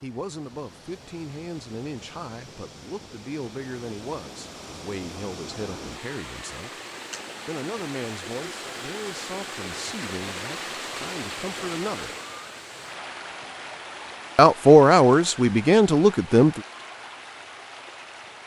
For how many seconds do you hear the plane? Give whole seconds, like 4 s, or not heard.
not heard.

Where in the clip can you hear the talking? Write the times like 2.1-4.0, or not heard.
0.0-6.7, 7.5-12.2, 14.3-16.6.